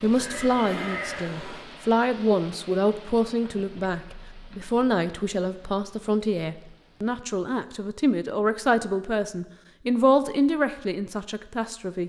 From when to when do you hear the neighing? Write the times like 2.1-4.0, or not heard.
0.0-1.6.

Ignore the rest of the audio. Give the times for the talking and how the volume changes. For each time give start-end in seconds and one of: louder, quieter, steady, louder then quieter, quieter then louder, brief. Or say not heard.
0.0-12.0 steady.